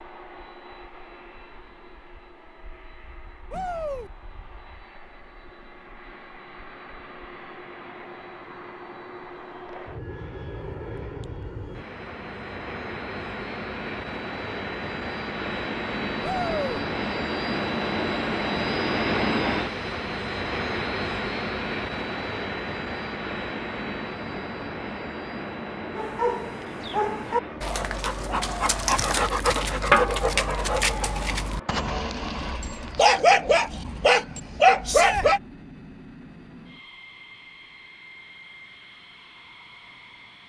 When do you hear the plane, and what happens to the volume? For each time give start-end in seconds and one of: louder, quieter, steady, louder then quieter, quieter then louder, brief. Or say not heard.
0.0-40.4 louder then quieter.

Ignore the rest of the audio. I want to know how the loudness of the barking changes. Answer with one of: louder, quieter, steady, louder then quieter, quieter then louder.
louder.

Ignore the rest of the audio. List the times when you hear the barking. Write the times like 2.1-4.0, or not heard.
25.9-35.4.